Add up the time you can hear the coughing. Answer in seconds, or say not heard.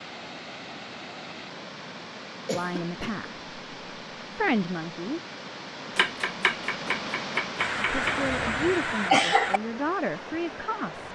3 s.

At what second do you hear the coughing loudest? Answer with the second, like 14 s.
9 s.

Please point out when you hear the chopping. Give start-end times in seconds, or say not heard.
6.0-8.2.